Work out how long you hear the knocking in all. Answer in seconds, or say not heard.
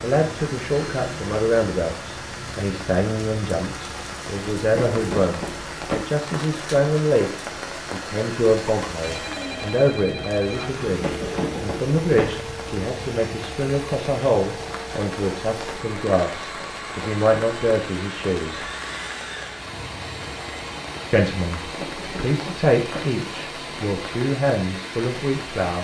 4 s.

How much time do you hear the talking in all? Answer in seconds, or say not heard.
23 s.